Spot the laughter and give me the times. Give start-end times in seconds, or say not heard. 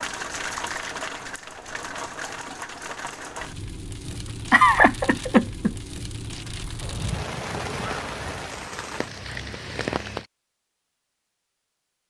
4.0-5.8.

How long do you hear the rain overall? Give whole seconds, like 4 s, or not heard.
10 s.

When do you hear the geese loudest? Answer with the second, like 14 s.
7 s.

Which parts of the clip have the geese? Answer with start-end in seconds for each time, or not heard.
6.8-8.5.